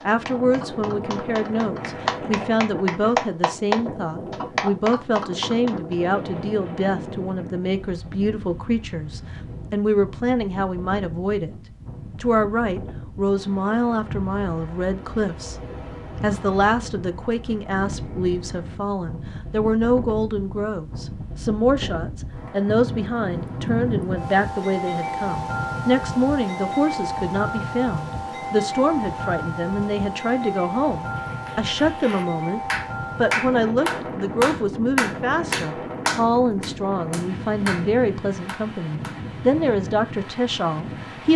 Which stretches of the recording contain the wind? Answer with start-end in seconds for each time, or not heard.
0.0-41.3.